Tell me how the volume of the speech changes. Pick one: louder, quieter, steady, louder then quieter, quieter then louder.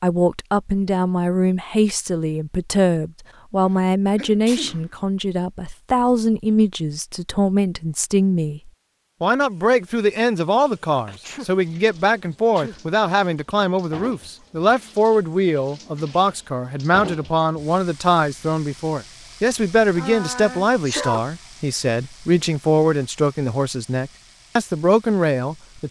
steady.